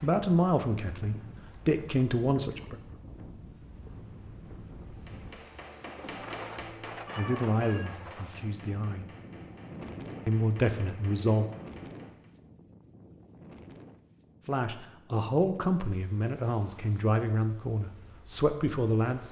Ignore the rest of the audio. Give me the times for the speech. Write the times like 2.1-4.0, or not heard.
0.0-2.8, 7.2-9.1, 10.2-11.4, 14.4-19.2.